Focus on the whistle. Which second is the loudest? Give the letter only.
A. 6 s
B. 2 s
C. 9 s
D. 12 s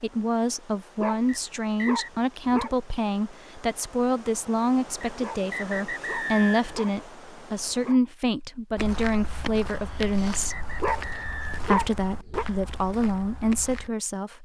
A.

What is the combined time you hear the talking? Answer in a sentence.
The talking can be heard for 13 seconds in total.